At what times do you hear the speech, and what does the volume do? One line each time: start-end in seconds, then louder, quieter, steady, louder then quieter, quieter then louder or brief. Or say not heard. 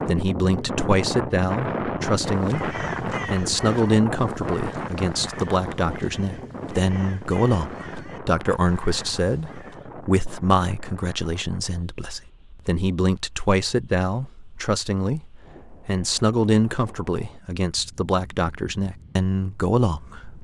0.1-20.3 steady.